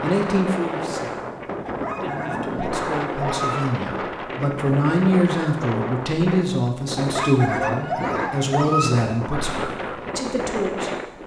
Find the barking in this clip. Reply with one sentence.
You can hear the barking from 1.6 to 3.6 s and from 7.0 to 8.9 s.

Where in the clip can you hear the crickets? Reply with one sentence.
The crickets can't be heard in this clip.